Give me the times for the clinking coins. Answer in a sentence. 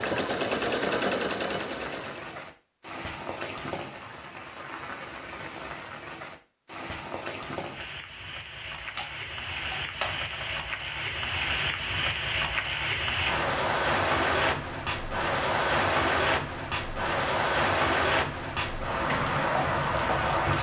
The clinking coins can be heard from 8.8 to 10.6 s.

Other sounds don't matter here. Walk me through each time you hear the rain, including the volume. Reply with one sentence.
You can hear the rain from 0.1 to 20.5 s, getting louder.